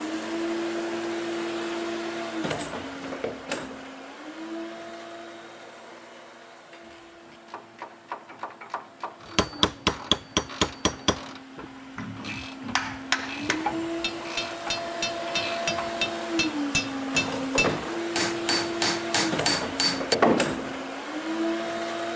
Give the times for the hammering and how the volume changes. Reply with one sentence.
The hammering can be heard from 9.3 to 20.9 s, getting quieter then louder.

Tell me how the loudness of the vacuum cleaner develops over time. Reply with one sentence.
The volume of the vacuum cleaner goes down, then up.